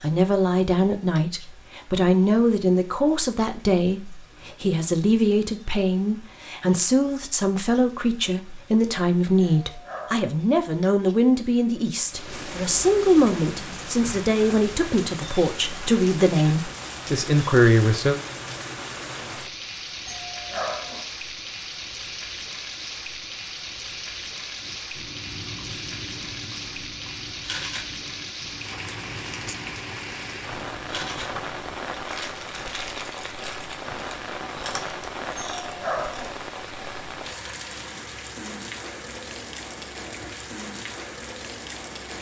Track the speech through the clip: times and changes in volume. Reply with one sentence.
The speech can be heard from 0.0 to 18.2 s, at a steady volume.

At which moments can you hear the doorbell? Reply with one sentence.
The doorbell can be heard from 9.4 to 10.3 s, from 20.1 to 21.1 s and from 35.6 to 36.4 s.